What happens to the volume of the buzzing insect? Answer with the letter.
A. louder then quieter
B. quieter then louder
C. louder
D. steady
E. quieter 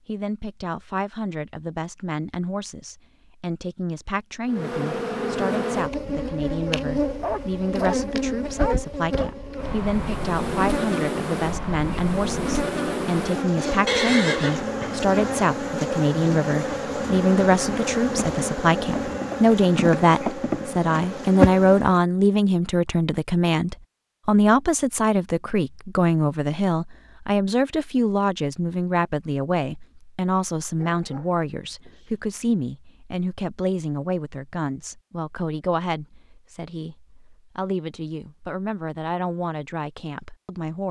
D.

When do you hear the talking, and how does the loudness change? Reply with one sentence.
You can hear the talking from 0.1 to 40.8 s, getting louder then quieter.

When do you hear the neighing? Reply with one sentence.
The neighing can be heard from 13.8 to 14.7 s.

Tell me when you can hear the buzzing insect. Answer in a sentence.
You can hear the buzzing insect from 4.5 to 22.0 s.